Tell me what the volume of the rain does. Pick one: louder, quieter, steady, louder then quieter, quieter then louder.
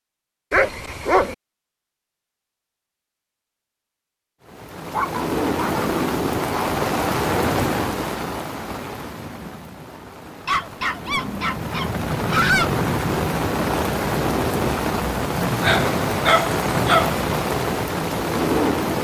quieter then louder.